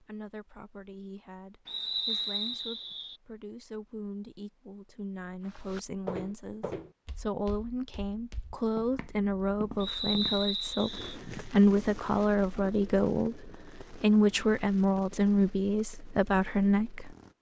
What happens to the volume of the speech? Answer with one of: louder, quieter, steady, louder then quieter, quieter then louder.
louder.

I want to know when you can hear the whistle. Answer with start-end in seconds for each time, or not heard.
1.6-3.1, 9.8-11.2.